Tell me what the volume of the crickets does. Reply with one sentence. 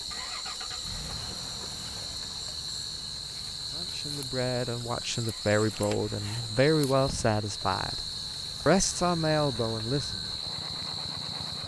The loudness of the crickets stays about the same.